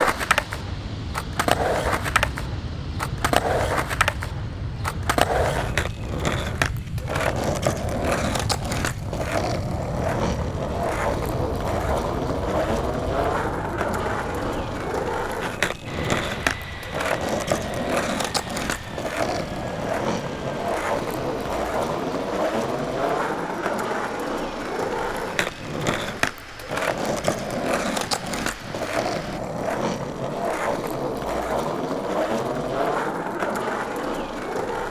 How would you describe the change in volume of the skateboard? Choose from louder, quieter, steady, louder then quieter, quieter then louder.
steady.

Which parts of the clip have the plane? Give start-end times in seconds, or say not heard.
0.0-29.4.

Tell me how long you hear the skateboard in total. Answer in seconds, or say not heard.
35 s.